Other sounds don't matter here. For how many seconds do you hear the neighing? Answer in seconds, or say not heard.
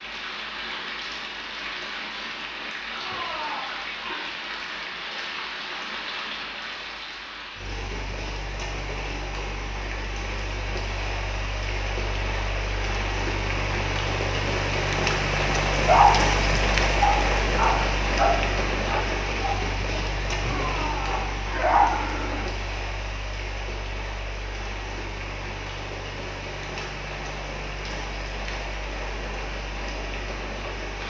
3 s.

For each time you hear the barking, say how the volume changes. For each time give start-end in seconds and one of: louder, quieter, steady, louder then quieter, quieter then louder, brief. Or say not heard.
15.8-21.9 quieter.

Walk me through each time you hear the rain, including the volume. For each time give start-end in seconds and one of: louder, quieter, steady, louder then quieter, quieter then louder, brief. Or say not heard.
0.0-31.0 louder then quieter.